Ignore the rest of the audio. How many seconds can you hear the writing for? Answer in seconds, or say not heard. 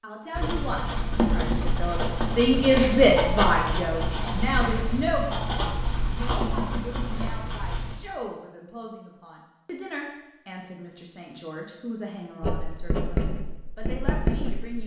10 s.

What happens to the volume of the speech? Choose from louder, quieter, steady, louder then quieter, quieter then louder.
quieter.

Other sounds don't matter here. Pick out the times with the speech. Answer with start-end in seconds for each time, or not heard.
0.0-14.8.